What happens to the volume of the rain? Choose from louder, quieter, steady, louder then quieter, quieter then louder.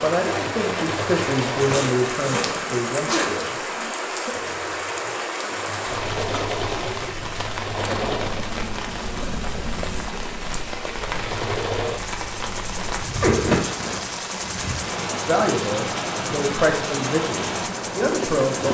steady.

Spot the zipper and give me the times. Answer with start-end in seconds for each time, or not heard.
1.6-3.3, 9.2-10.1, 13.2-14.1.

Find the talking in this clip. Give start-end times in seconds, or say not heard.
0.0-4.3, 15.2-18.6.